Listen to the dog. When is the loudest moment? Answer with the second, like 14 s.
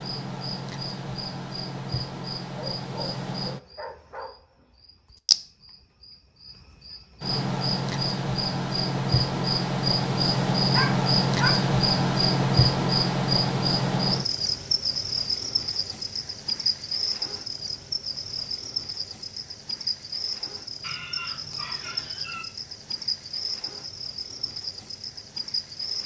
11 s.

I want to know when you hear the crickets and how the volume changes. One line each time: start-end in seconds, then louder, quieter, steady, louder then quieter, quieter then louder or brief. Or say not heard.
0.0-26.0 louder then quieter.